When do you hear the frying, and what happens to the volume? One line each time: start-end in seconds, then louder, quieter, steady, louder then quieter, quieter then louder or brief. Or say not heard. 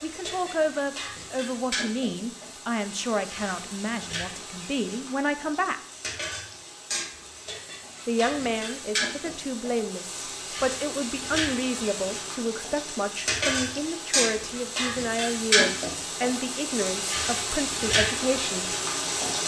0.0-19.4 louder.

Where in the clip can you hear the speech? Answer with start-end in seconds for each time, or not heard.
0.0-5.8, 8.1-18.8.